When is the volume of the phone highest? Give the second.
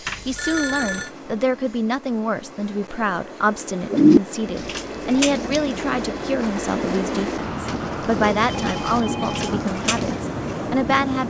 1 s.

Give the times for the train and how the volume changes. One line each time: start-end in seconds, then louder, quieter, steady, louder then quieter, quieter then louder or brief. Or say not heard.
0.0-11.2 louder.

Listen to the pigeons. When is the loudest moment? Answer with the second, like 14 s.
4 s.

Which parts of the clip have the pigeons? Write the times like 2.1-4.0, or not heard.
3.9-10.2.